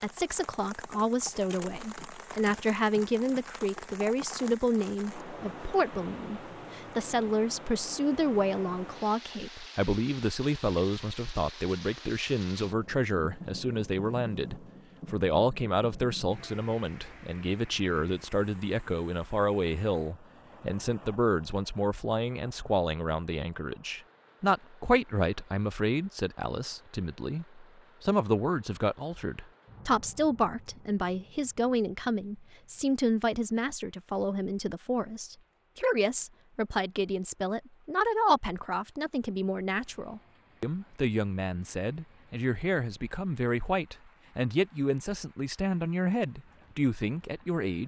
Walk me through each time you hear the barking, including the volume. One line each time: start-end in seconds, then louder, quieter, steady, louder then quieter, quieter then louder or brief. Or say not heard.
not heard.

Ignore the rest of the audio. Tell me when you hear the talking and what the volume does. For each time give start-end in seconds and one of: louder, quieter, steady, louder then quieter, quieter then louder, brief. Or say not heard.
0.0-47.8 steady.